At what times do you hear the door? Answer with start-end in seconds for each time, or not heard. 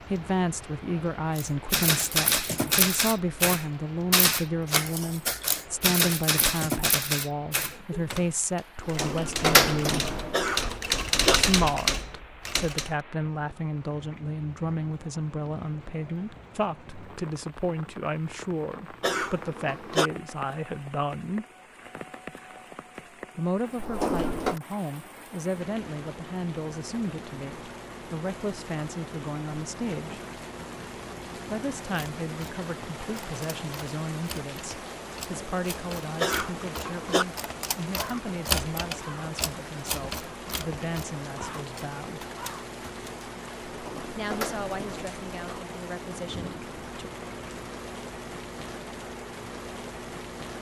8.8-10.7, 23.8-24.6, 43.9-45.6.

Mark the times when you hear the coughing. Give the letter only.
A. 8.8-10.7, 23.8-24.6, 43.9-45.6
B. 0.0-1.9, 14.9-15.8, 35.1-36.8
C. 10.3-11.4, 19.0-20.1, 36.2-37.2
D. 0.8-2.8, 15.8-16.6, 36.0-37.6
C.